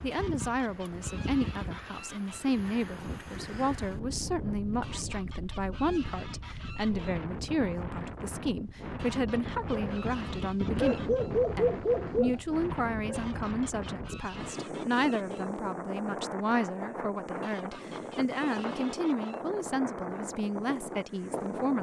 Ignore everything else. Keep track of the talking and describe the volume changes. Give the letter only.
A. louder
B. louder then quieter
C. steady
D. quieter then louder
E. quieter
C.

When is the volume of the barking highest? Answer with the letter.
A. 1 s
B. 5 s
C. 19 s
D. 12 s
D.